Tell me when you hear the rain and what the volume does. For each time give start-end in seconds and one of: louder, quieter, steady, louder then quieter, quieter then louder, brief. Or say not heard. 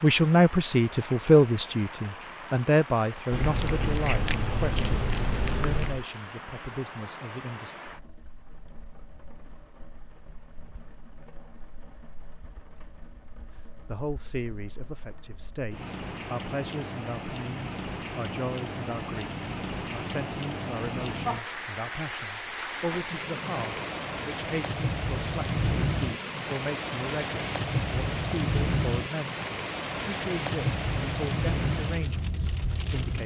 0.0-33.2 quieter then louder.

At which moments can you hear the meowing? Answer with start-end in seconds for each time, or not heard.
3.3-6.0.